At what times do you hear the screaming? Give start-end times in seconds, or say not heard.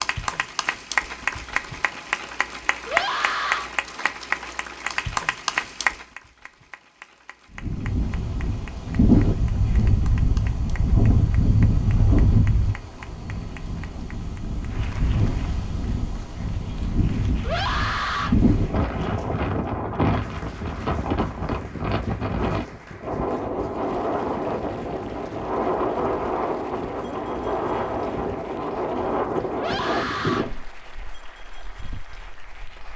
2.9-3.7, 17.4-18.4, 29.6-30.5.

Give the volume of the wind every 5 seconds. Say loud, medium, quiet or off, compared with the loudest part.
off, loud, loud, loud, loud, loud, medium.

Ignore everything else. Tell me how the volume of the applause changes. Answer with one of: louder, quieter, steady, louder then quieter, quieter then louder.
quieter.